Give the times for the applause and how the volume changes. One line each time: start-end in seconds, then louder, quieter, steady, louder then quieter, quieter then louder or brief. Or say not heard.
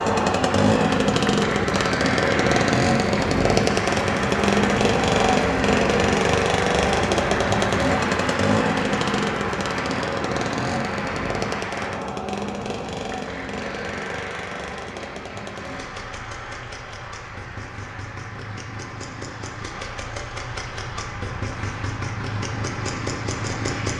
0.0-23.9 quieter.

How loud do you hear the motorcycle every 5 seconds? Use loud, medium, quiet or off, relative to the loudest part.
loud, loud, medium, quiet, medium.